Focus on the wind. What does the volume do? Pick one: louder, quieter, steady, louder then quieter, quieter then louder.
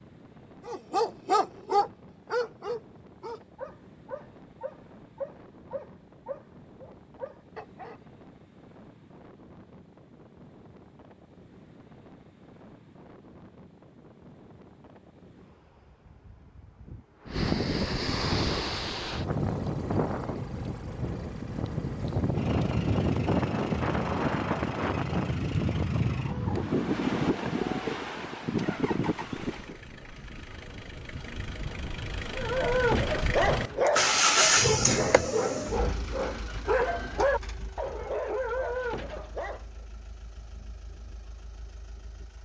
louder.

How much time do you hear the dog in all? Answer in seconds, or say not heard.
15 s.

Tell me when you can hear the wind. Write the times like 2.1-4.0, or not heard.
0.0-29.8.